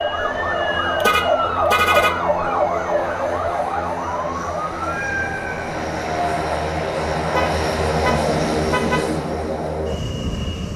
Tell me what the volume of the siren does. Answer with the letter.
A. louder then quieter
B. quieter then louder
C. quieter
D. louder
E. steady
C.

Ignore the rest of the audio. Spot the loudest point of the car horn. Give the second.
2 s.